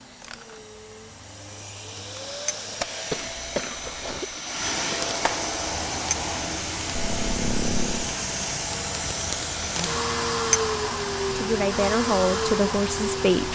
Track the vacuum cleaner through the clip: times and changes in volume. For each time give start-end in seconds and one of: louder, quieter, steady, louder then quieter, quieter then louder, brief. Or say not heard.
0.0-13.5 louder.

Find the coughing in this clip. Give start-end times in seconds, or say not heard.
3.1-4.4, 6.9-8.2.